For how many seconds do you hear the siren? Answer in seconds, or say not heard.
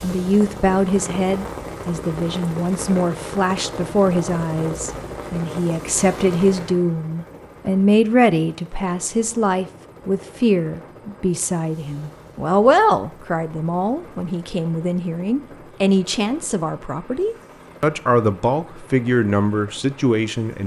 not heard.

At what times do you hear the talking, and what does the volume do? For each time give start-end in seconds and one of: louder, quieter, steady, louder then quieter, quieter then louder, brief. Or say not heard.
0.0-20.6 steady.